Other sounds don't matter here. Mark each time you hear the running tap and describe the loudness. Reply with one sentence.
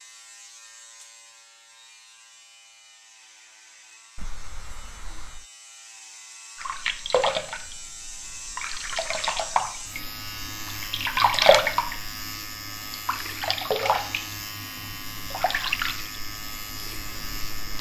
The running tap can be heard from 6.5 to 17.7 s, getting louder then quieter.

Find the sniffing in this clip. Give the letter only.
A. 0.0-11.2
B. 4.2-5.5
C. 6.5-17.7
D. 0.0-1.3
B.